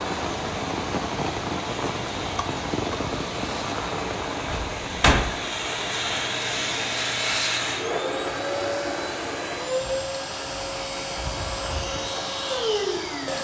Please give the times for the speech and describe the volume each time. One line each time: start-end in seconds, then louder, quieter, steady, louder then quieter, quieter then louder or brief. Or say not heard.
not heard.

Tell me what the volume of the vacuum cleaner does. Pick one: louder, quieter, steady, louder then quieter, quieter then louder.
louder.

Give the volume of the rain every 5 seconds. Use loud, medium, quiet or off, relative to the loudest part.
loud, medium, medium.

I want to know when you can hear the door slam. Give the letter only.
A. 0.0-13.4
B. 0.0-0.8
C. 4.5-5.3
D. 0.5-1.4
C.